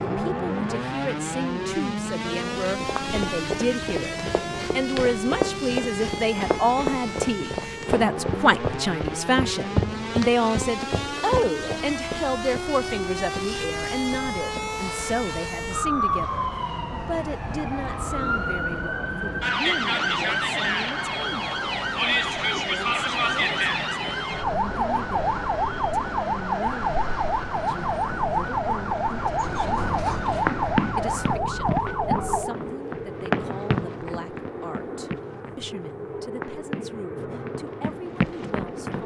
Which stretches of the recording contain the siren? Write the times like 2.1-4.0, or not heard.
0.0-32.5.